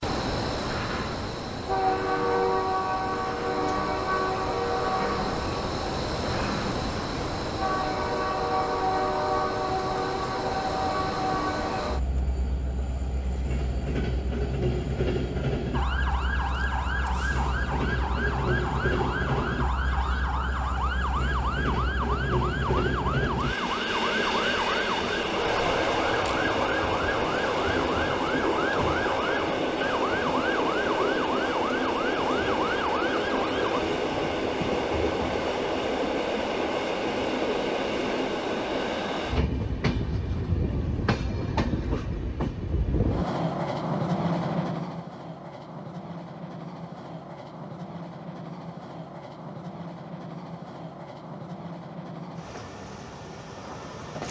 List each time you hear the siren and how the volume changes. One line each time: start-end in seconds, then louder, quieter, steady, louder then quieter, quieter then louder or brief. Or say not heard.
15.7-33.8 steady.